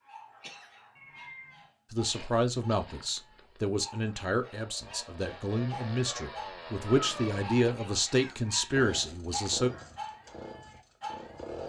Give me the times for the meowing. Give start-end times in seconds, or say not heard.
0.9-1.7, 6.0-7.5.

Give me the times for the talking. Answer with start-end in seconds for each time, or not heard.
1.9-9.7.